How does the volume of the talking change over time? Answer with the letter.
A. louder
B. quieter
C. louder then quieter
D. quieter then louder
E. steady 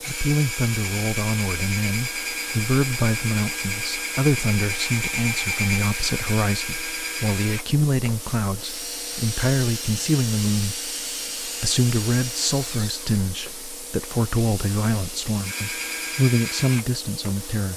E.